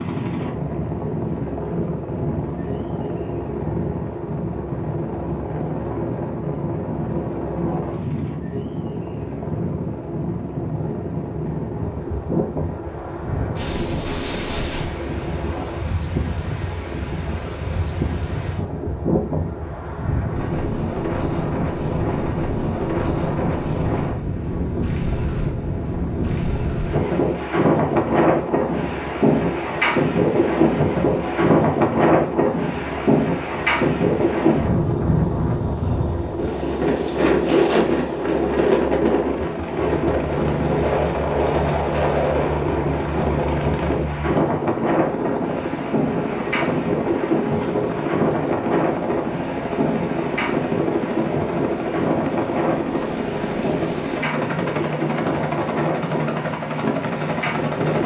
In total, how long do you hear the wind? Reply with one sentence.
You can hear the wind for 58 seconds altogether.